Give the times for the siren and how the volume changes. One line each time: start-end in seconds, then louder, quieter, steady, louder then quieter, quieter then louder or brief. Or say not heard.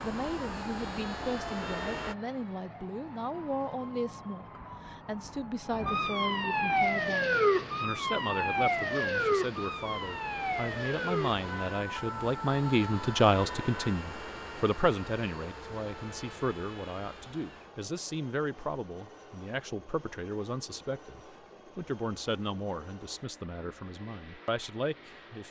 0.1-13.9 louder then quieter.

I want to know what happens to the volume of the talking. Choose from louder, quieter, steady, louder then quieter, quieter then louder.
louder then quieter.